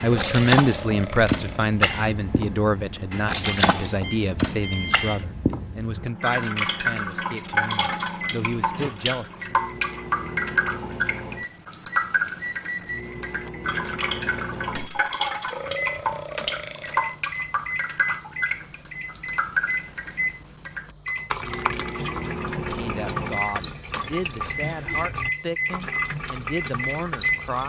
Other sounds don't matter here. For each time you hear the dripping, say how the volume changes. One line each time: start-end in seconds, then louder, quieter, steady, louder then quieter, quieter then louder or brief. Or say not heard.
0.0-27.6 quieter.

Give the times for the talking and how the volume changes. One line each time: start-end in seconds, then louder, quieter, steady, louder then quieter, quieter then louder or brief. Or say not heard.
0.0-9.3 quieter
22.6-27.6 steady.